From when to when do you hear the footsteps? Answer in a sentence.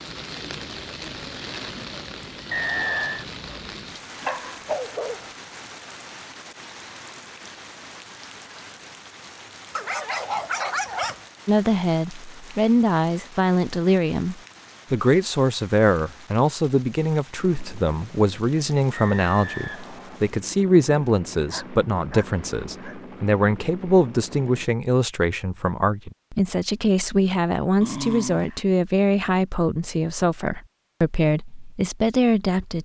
The footsteps can't be heard in this clip.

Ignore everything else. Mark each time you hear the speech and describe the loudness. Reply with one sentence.
The speech can be heard from 11.4 to 32.8 s, at a steady volume.